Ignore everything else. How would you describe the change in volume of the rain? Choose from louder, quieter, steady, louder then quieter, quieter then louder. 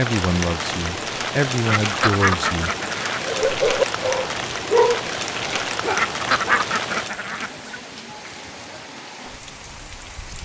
quieter.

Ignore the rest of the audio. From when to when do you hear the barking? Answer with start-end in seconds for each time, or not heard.
3.2-6.7.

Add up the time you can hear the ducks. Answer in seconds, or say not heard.
4 s.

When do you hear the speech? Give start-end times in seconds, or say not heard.
0.0-2.7.